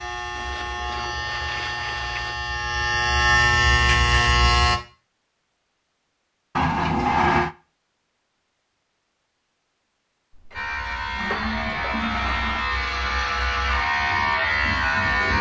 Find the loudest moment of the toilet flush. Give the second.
7 s.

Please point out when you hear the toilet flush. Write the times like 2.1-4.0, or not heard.
0.3-2.4, 6.5-7.5, 10.3-12.7.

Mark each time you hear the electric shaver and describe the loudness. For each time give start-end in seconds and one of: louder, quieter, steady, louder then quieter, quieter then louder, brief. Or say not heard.
0.0-4.8 louder
10.5-15.3 louder.